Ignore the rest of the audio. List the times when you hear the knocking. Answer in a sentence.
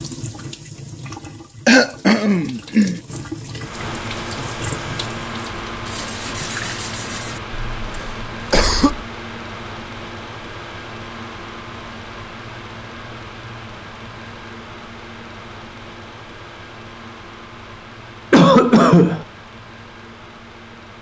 The knocking can't be heard in this clip.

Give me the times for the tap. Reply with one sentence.
The tap can be heard from 0.0 to 7.4 s.